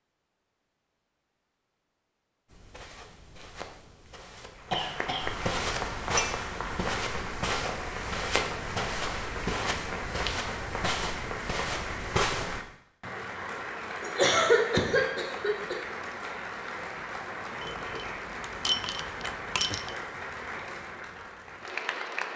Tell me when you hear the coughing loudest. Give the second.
14 s.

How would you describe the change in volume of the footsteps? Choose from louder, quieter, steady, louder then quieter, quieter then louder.
louder.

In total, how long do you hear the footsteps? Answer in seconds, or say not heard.
10 s.